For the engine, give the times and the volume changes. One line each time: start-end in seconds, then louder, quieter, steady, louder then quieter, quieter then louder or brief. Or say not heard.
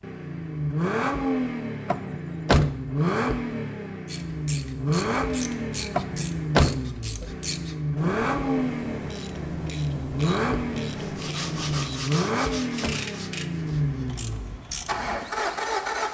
0.0-16.0 steady.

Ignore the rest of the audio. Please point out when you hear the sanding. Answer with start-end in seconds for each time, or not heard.
10.9-13.8.